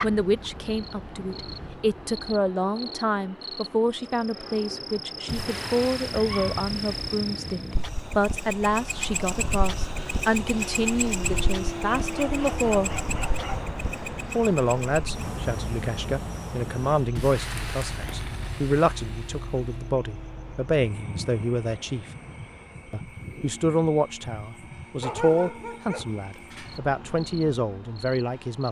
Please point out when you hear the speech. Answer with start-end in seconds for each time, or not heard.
0.0-12.9, 14.3-22.1, 22.9-28.6.